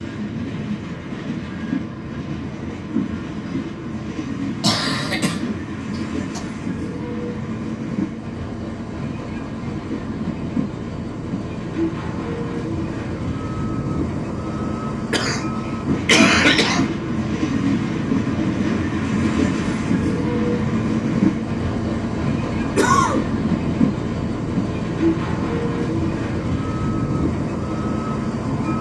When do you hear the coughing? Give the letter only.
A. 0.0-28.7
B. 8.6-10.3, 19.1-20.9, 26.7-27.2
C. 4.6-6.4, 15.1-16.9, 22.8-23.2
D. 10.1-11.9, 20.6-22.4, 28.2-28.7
C.